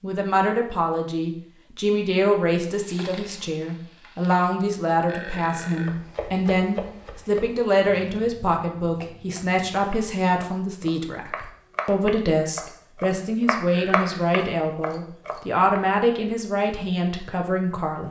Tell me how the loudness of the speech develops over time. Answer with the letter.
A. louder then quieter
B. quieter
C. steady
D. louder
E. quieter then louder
C.